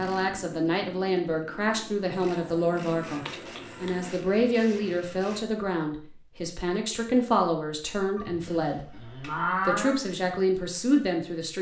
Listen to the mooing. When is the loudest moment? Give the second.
10 s.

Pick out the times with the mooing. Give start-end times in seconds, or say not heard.
2.4-4.1, 8.2-10.0.